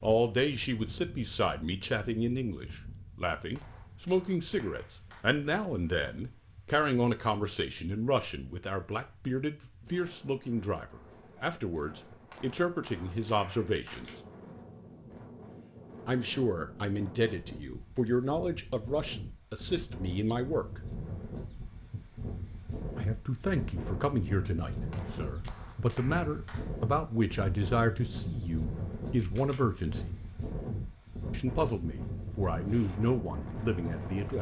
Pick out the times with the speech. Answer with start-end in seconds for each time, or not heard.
0.0-14.1, 16.1-20.8, 22.9-30.1, 31.3-34.3.